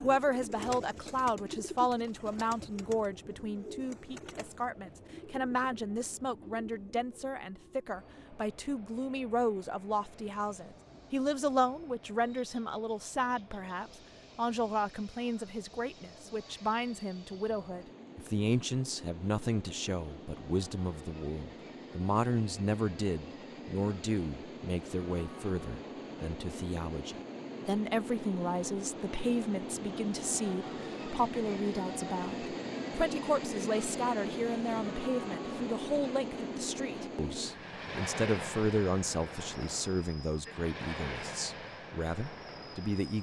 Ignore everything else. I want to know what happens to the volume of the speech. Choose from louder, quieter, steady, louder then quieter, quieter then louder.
steady.